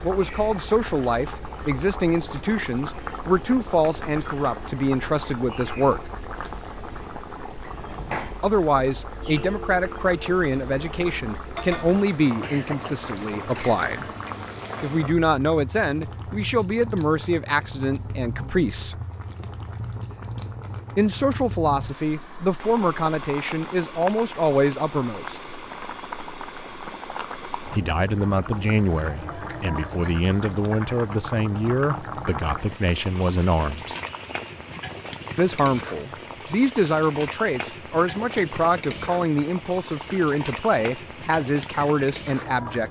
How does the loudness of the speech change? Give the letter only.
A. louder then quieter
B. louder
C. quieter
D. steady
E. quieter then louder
D.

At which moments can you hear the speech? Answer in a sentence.
You can hear the speech from 0.0 to 6.1 s, from 8.4 to 14.1 s, from 14.8 to 18.9 s, from 20.9 to 25.4 s, from 27.8 to 34.0 s and from 35.4 to 42.8 s.